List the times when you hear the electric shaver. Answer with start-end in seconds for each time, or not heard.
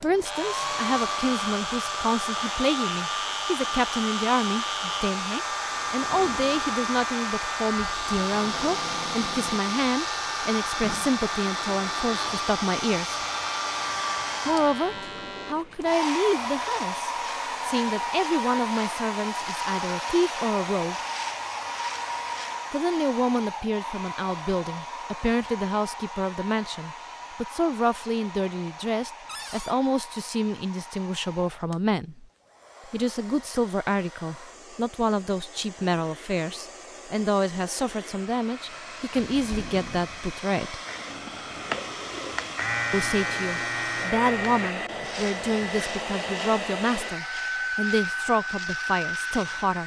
0.0-22.6, 40.9-49.8.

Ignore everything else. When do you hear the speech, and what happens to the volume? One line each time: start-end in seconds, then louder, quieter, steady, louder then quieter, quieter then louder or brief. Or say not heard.
0.0-13.2 steady
14.4-20.9 steady
22.7-32.2 steady
32.9-40.8 steady
42.9-49.8 steady.